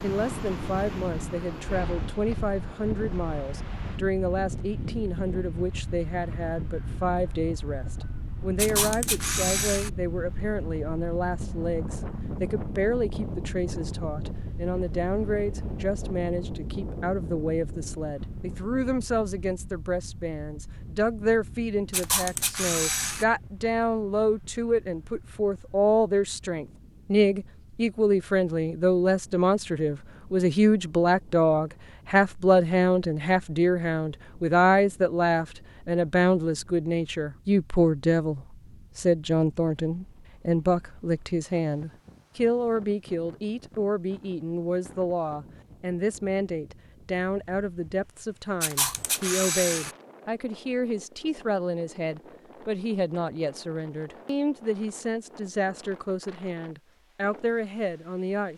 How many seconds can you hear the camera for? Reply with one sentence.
The camera can be heard for 4 seconds in total.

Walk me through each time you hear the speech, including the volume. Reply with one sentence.
The speech can be heard from 0.0 to 58.5 s, getting louder then quieter.